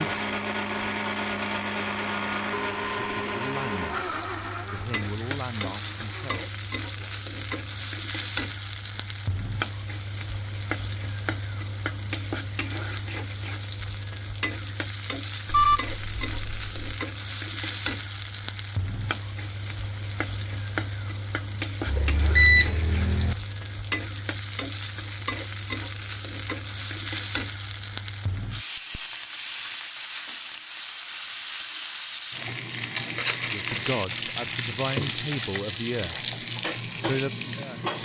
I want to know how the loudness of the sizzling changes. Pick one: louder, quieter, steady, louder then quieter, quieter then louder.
louder.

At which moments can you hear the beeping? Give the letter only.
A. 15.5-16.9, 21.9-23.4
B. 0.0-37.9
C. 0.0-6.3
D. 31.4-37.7
A.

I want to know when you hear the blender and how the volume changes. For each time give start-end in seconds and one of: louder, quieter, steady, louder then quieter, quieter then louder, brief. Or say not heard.
0.0-6.3 quieter.